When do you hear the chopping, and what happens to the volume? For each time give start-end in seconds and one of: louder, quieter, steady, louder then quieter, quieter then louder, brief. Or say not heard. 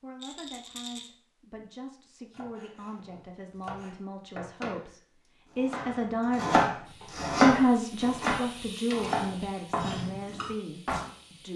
2.3-4.8 brief
5.5-11.1 quieter.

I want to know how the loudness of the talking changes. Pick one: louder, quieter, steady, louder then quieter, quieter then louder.
louder then quieter.